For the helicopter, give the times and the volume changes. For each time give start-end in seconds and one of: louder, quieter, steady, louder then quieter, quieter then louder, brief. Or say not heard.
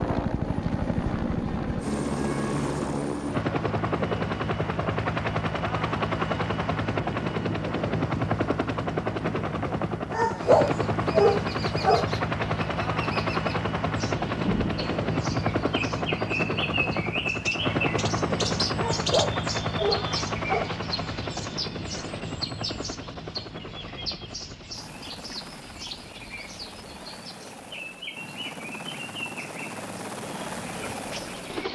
0.0-31.7 quieter.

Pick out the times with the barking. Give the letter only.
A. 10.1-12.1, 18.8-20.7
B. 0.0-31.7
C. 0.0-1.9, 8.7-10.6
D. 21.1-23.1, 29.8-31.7
A.